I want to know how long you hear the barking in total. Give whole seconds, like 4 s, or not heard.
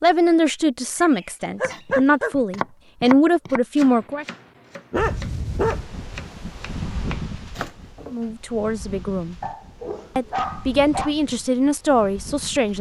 4 s.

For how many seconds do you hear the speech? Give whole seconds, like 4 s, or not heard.
8 s.